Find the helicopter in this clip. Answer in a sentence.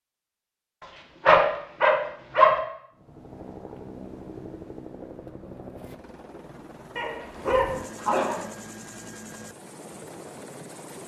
The helicopter can be heard from 2.9 to 11.0 s.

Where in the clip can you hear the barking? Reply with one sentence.
The barking can be heard from 1.2 to 2.5 s and from 7.0 to 8.4 s.